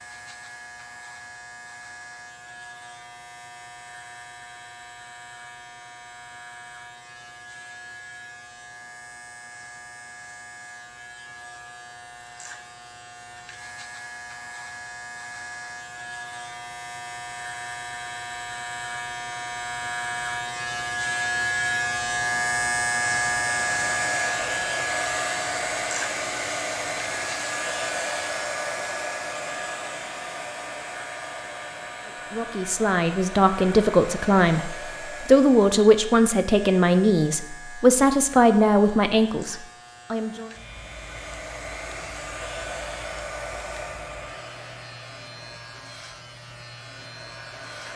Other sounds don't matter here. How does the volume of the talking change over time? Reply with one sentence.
The volume of the talking stays about the same.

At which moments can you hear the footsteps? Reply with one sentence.
The footsteps can't be heard in this clip.